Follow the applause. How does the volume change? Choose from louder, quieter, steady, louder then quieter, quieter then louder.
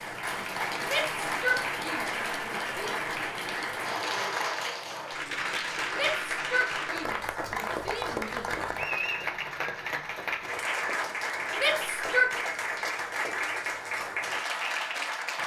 steady.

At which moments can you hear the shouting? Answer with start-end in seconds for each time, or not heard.
0.8-3.0, 5.9-8.6, 11.6-12.3.